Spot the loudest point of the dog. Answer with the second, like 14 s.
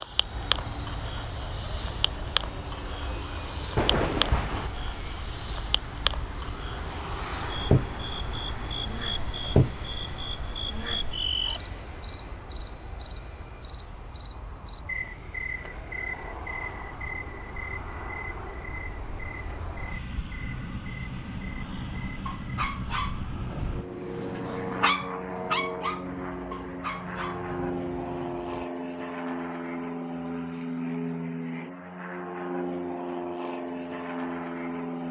25 s.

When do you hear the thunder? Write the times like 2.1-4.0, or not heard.
3.8-4.7.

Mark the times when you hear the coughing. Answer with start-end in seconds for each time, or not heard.
not heard.